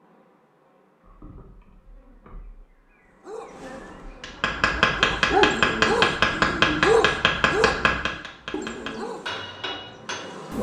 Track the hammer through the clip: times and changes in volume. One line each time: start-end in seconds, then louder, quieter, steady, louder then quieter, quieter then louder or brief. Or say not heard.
4.2-10.5 quieter.